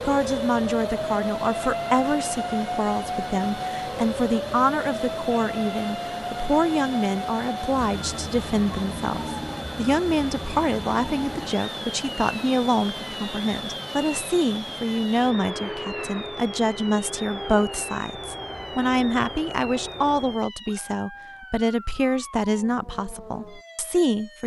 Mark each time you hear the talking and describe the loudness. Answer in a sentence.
You can hear the talking from 0.1 to 24.4 s, at a steady volume.